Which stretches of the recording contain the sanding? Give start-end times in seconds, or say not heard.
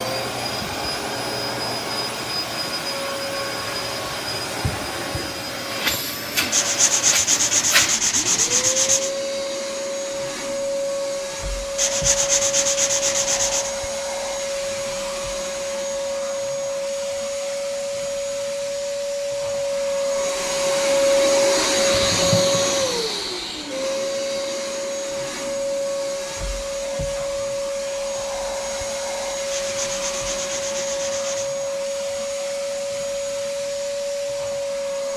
6.5-9.1, 11.8-13.8, 29.5-31.6.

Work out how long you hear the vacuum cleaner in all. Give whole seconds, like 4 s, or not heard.
35 s.